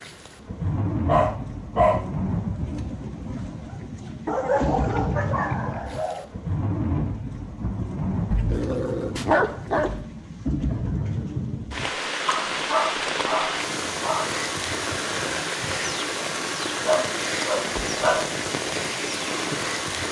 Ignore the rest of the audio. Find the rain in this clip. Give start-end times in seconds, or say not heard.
0.0-20.0.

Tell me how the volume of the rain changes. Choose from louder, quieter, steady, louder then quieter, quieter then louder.
steady.